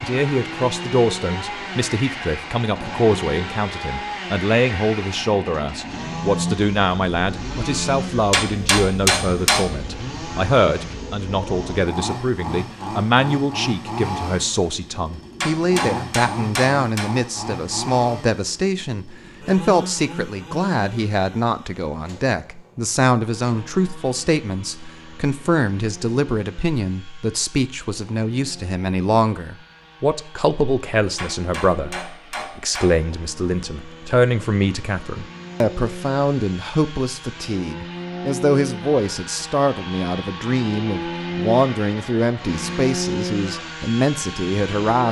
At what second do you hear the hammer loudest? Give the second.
9 s.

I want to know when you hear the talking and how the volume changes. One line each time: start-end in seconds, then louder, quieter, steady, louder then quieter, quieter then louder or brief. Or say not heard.
0.0-45.0 steady.